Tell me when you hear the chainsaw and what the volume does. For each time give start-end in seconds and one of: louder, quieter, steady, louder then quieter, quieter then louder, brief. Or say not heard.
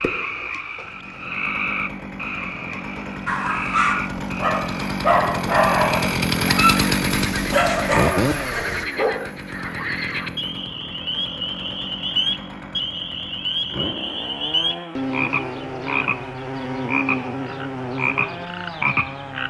0.0-19.4 louder then quieter.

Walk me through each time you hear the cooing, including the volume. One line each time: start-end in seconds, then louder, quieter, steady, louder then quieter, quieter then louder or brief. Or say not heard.
not heard.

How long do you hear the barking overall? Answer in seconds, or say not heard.
6 s.